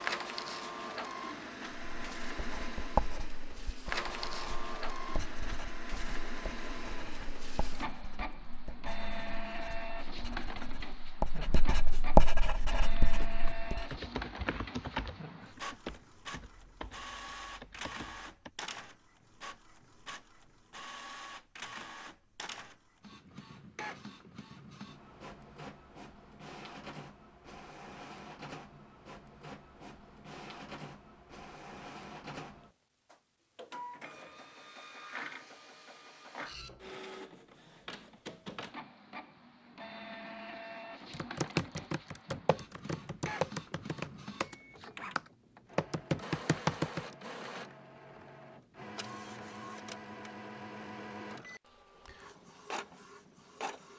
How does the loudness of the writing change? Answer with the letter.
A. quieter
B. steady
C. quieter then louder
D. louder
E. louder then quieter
C.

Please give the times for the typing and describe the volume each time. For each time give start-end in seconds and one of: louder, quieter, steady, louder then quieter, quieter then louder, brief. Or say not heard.
12.6-18.5 louder then quieter
41.1-47.1 quieter then louder.